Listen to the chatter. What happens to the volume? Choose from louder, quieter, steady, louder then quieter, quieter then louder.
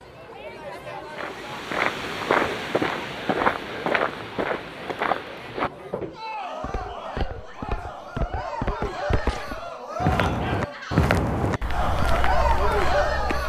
louder.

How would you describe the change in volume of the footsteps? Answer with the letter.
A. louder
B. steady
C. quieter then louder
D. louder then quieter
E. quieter
C.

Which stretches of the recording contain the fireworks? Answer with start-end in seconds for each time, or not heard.
not heard.